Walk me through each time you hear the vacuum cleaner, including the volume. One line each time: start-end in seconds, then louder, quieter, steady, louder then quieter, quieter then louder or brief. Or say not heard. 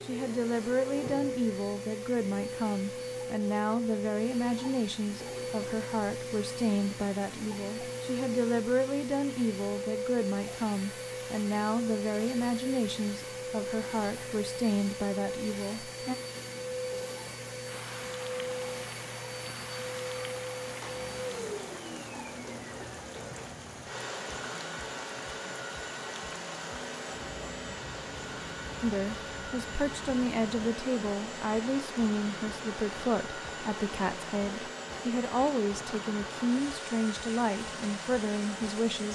0.0-39.1 steady.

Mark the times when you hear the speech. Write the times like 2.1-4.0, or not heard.
0.0-16.1, 28.8-39.1.